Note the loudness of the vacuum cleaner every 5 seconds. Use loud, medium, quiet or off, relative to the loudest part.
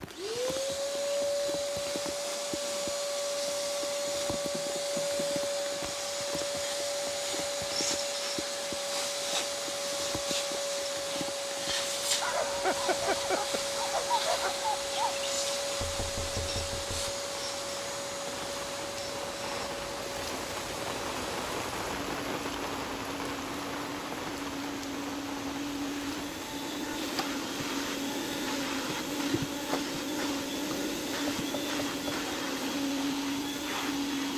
loud, loud, loud, loud, medium, loud, loud.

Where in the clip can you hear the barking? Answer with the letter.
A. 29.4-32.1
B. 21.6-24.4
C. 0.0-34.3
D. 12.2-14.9
D.